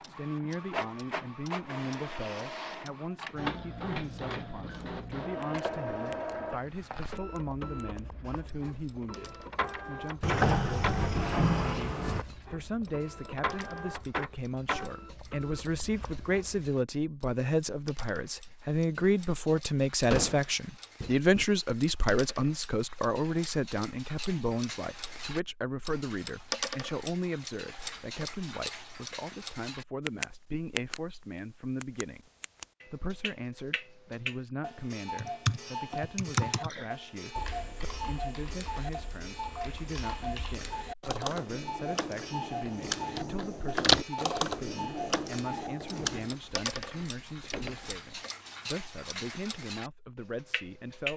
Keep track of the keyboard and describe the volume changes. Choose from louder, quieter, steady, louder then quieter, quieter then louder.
quieter then louder.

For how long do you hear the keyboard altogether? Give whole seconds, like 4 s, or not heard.
11 s.